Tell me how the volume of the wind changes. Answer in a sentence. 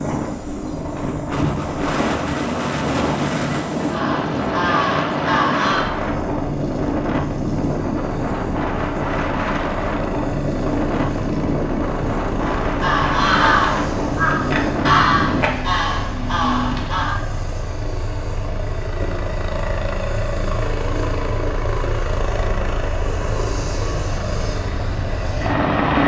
The volume of the wind stays about the same.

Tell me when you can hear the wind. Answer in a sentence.
The wind can be heard from 0.0 to 15.5 s.